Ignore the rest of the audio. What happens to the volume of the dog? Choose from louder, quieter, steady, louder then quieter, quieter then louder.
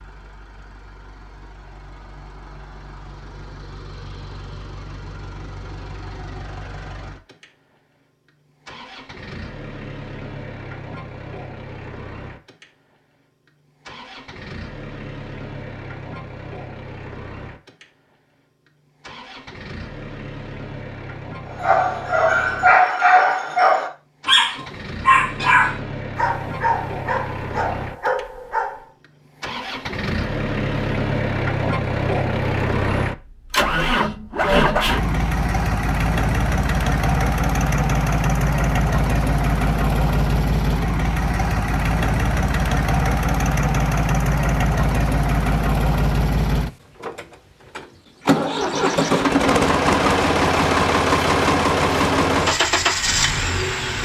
quieter.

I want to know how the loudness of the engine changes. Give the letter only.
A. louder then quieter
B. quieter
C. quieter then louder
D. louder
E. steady
D.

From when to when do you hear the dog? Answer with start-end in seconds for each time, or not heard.
21.4-28.9.